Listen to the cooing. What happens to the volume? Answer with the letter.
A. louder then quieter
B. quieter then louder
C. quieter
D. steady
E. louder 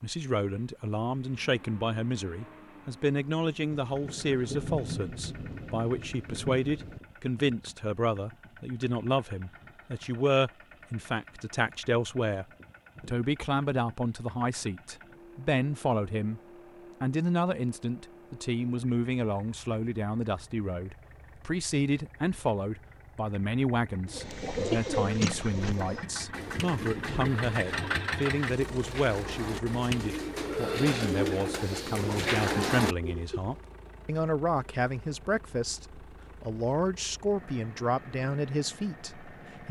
B.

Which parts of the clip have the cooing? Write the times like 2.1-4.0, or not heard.
24.1-33.4.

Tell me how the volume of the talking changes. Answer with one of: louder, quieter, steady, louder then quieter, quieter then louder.
steady.